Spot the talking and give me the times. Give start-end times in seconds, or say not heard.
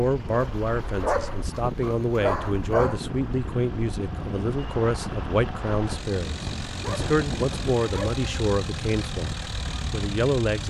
0.0-10.6.